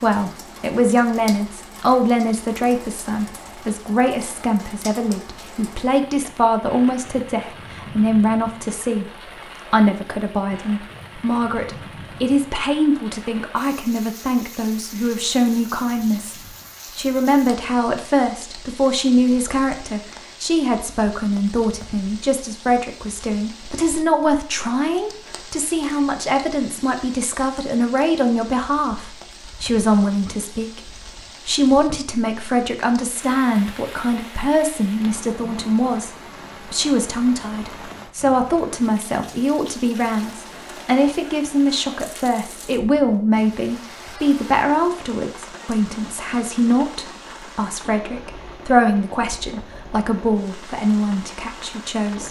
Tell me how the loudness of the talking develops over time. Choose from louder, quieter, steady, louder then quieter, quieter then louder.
steady.